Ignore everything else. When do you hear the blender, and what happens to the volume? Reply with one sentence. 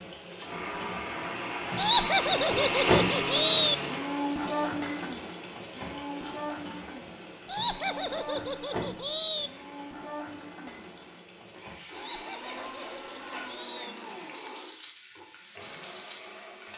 The blender can be heard from 0.2 to 16.7 s, getting quieter.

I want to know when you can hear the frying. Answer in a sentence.
The frying can be heard from 0.0 to 16.7 s.